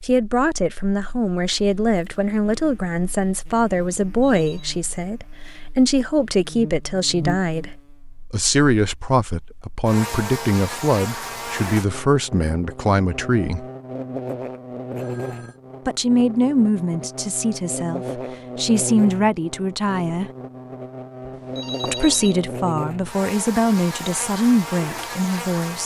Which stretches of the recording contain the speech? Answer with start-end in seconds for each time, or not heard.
0.0-7.7, 8.3-13.7, 15.8-20.3, 21.8-25.8.